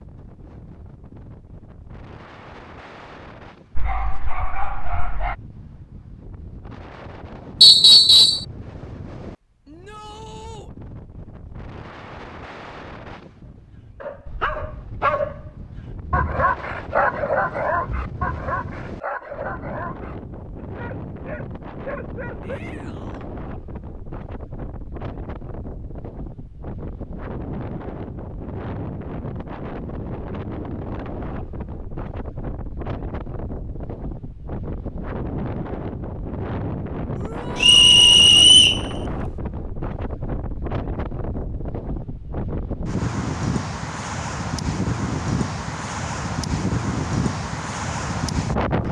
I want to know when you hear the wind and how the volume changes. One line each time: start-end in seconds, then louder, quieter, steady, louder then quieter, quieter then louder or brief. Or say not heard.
0.0-48.8 louder.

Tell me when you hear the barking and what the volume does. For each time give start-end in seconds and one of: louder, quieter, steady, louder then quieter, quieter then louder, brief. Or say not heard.
3.8-5.3 brief
13.7-22.6 quieter.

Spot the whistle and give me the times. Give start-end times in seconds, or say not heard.
7.6-8.4, 37.6-38.8.